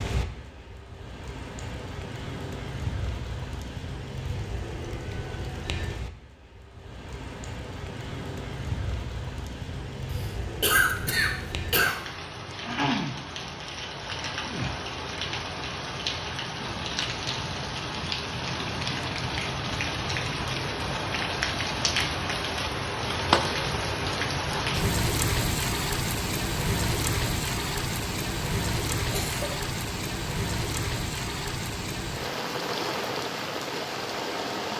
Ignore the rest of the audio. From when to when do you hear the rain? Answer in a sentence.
The rain can be heard from 0.0 to 34.7 s.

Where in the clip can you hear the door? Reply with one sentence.
The door can't be heard in this clip.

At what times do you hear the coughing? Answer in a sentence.
You can hear the coughing from 10.1 to 11.9 s and from 29.1 to 29.6 s.